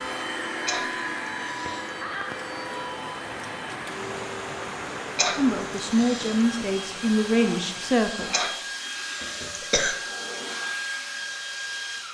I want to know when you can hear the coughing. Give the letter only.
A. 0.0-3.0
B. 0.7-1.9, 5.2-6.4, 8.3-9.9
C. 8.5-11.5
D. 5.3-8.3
B.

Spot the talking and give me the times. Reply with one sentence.
You can hear the talking from 5.3 to 8.3 s.